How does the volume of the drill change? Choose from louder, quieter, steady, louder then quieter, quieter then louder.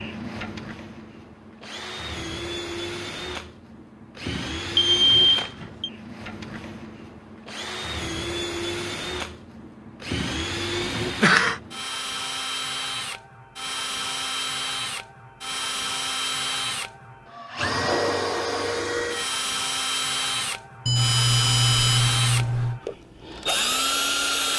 louder.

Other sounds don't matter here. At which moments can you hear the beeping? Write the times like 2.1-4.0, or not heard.
4.8-5.9, 20.9-22.8.